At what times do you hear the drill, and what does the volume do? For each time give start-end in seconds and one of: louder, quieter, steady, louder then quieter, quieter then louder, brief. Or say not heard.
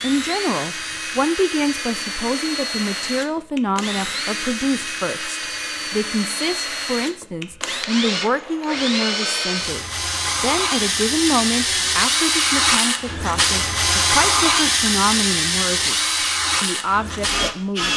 0.0-17.9 louder.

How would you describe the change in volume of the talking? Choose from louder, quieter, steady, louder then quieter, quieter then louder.
steady.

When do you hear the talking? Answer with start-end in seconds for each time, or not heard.
0.0-17.9.